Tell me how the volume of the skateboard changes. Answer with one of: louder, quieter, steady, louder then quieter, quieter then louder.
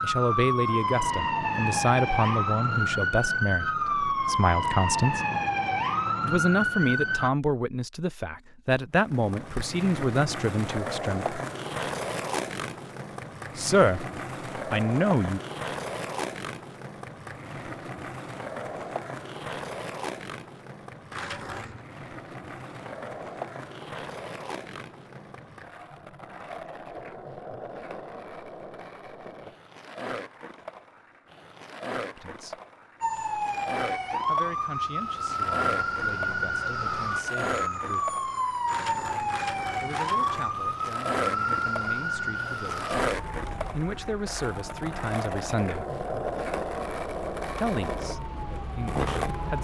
quieter then louder.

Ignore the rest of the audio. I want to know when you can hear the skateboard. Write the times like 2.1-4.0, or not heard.
9.1-49.5.